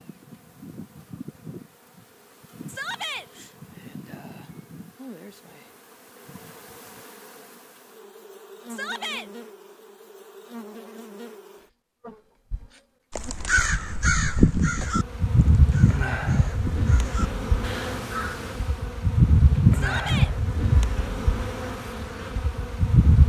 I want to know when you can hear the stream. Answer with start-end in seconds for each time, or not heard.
not heard.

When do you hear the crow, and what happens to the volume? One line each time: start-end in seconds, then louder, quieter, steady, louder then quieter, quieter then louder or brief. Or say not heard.
13.2-18.9 quieter then louder.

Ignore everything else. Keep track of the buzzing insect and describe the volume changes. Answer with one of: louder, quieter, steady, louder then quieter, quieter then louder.
louder.